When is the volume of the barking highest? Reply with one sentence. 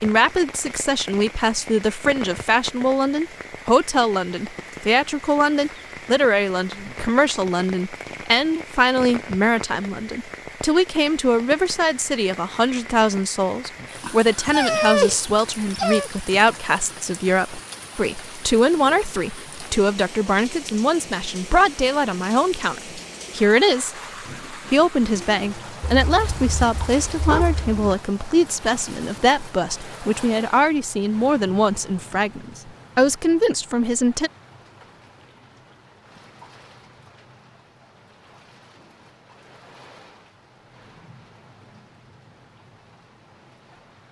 The volume of the barking peaks at 15 seconds.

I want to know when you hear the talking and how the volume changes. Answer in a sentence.
The talking can be heard from 0.0 to 34.3 s, at a steady volume.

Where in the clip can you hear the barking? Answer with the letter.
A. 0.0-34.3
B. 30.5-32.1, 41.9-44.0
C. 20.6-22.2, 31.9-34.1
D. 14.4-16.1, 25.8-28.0
D.